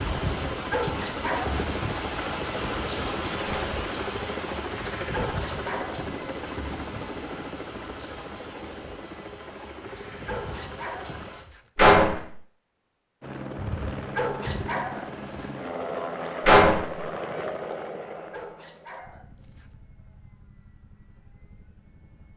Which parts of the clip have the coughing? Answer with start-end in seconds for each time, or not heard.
not heard.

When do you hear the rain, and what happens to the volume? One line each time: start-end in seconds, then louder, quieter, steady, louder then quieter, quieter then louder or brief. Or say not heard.
0.0-11.4 quieter.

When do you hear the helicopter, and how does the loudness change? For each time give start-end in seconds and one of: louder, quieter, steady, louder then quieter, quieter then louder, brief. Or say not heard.
0.0-11.3 quieter
13.2-22.3 quieter.